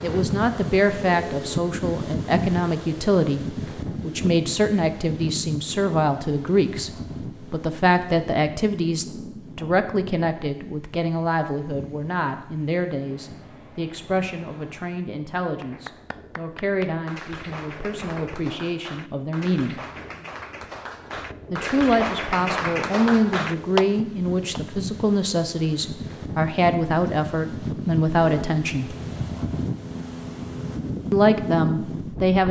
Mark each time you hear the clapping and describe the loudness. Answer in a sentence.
The clapping can be heard from 15.5 to 24.6 s, getting louder.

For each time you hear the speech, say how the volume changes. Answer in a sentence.
The speech can be heard from 0.0 to 6.9 s, at a steady volume; from 7.5 to 19.8 s, getting quieter; from 21.5 to 28.9 s, at a steady volume; and briefly from 31.1 to 32.4 s.